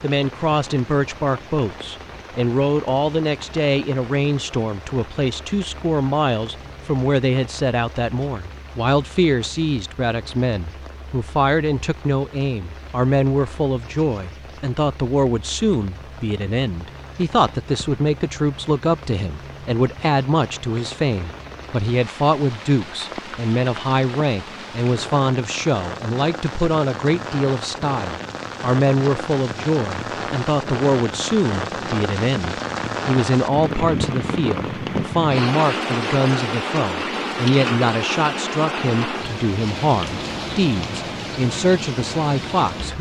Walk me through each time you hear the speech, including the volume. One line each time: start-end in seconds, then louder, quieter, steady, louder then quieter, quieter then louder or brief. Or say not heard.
0.0-42.9 steady.